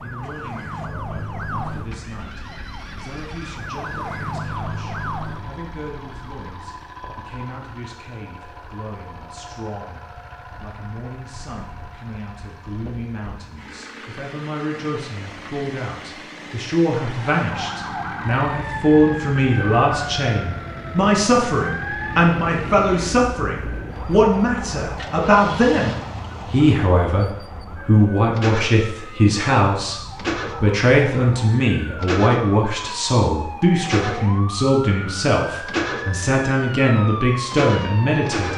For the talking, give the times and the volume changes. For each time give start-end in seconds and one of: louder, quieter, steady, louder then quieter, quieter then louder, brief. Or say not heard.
0.0-38.5 louder.